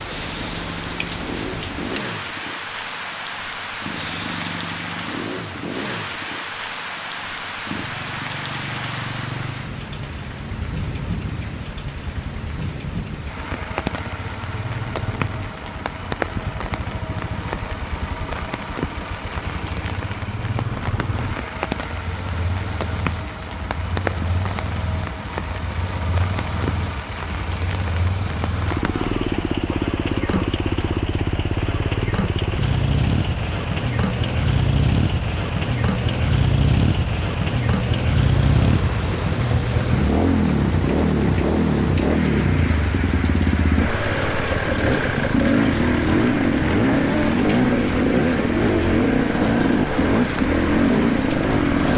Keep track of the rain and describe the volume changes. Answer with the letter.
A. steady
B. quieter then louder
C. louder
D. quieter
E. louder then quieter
A.